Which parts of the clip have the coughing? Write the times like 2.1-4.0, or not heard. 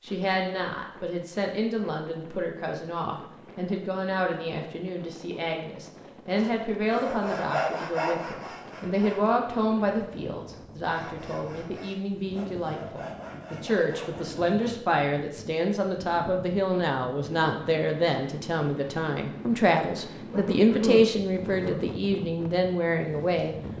20.3-21.9.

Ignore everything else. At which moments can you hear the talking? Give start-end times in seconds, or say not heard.
0.0-23.6.